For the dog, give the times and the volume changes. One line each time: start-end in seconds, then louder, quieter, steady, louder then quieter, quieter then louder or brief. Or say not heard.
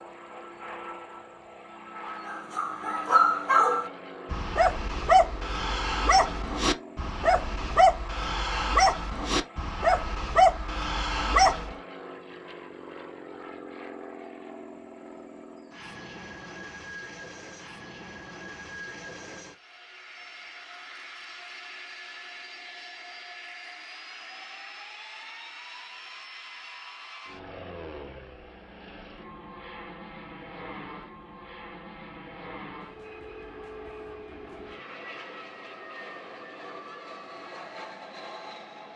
2.2-11.8 steady.